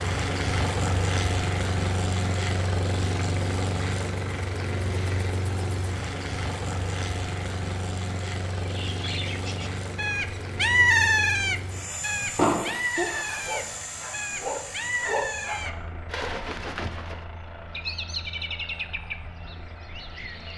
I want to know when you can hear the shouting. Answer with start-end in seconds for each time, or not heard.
not heard.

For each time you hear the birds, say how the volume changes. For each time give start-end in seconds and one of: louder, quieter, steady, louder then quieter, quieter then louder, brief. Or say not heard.
8.6-20.5 quieter.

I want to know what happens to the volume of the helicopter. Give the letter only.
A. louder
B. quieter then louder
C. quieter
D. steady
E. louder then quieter
C.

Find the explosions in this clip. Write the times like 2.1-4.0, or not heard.
12.3-12.8.